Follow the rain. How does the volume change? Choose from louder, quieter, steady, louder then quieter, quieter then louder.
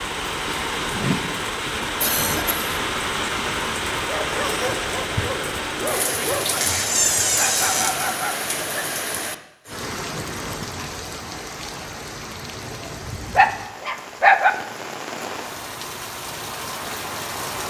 quieter.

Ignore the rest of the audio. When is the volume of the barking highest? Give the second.
14 s.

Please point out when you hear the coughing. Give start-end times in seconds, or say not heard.
2.0-2.8.